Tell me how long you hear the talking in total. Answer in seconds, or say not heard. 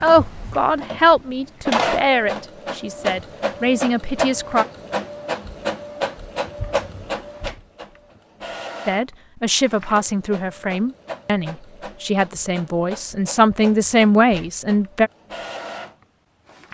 11 s.